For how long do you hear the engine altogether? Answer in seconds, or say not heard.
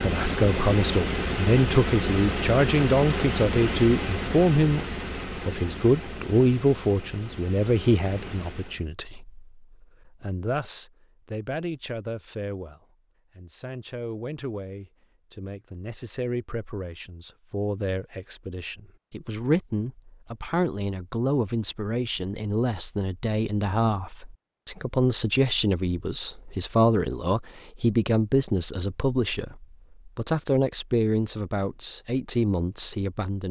9 s.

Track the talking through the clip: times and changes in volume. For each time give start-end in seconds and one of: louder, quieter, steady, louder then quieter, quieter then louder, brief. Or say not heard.
0.0-33.4 quieter then louder.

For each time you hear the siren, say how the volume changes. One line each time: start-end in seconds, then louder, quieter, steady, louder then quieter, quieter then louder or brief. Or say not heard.
not heard.